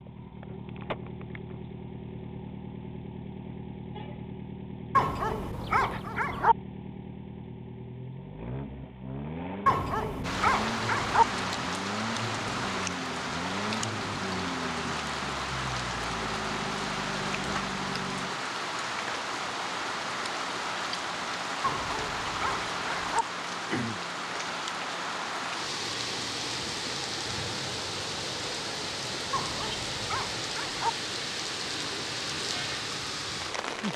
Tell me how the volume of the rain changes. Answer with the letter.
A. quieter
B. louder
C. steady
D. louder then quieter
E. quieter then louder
C.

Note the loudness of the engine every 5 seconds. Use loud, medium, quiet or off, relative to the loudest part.
loud, loud, loud, loud, off, off, off.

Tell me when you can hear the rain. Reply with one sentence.
The rain can be heard from 10.2 to 33.9 s.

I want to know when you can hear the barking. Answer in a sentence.
You can hear the barking from 5.0 to 6.5 s, from 9.7 to 11.2 s, from 21.6 to 23.2 s and from 29.3 to 30.9 s.